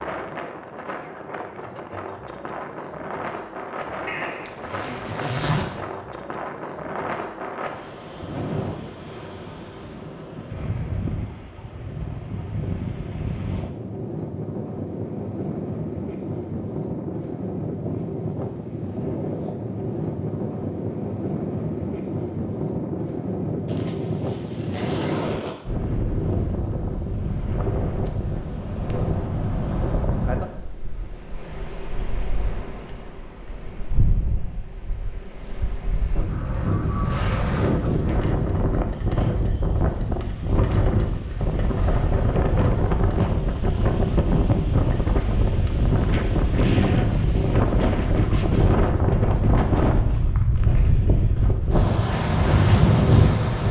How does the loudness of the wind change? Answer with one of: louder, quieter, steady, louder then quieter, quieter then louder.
louder.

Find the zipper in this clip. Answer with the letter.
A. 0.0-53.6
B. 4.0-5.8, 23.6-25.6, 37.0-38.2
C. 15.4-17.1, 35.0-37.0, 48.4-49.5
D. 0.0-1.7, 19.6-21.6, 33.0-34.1
B.